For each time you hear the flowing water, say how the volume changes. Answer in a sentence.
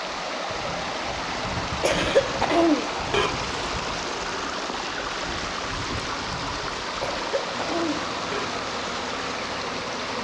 You can hear the flowing water from 0.0 to 10.1 s, at a steady volume.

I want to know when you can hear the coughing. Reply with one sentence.
The coughing can be heard from 1.8 to 3.3 s and from 7.0 to 8.5 s.